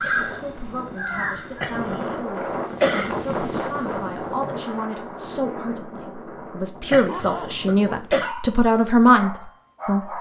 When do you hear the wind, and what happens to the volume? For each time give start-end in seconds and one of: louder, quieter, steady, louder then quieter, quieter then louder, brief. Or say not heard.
0.0-8.2 louder then quieter.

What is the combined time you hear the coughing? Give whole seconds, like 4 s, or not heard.
3 s.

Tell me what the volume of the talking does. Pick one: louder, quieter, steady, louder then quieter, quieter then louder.
louder.